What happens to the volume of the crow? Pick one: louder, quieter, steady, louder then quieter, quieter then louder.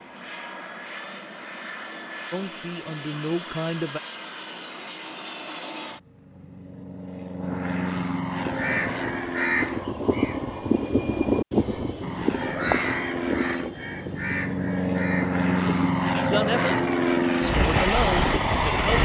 quieter.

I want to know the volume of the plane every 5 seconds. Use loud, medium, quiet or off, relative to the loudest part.
quiet, medium, medium, loud.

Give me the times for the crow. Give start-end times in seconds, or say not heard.
8.3-17.9.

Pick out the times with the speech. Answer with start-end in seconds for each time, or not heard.
2.3-4.0, 16.1-18.9.